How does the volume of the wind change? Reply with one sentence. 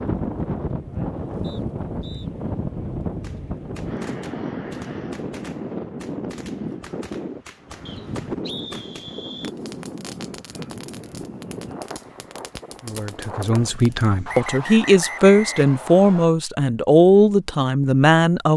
The loudness of the wind goes down.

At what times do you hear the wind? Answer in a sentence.
You can hear the wind from 0.0 to 14.5 s.